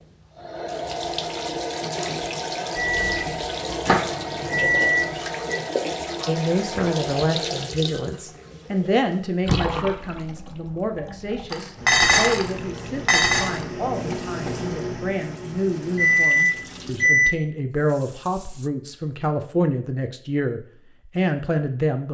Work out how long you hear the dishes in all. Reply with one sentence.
The dishes can be heard for 3 seconds in total.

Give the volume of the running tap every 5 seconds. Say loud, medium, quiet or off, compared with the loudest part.
loud, loud, quiet, quiet, off.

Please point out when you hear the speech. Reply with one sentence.
You can hear the speech from 6.2 to 22.1 s.